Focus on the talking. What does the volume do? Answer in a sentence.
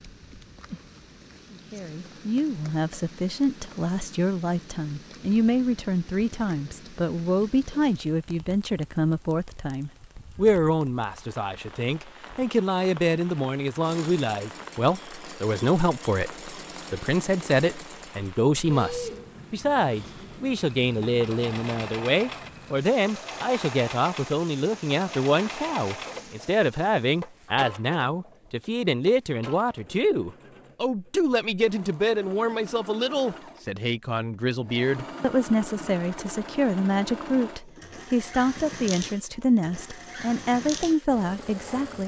The loudness of the talking stays about the same.